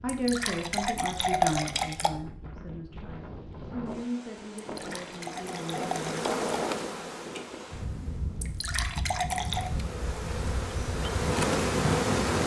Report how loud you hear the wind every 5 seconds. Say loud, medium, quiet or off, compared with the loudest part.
medium, medium, loud.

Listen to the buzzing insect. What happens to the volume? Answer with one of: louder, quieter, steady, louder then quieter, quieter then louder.
quieter then louder.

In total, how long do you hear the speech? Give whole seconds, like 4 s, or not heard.
6 s.